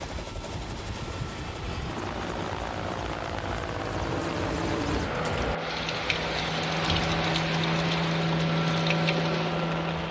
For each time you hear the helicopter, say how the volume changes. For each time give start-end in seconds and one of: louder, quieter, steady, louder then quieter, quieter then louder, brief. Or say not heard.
0.0-10.0 louder.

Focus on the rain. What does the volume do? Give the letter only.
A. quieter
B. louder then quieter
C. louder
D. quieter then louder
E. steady
C.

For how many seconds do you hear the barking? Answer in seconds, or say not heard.
not heard.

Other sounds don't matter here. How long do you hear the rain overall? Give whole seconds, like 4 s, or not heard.
10 s.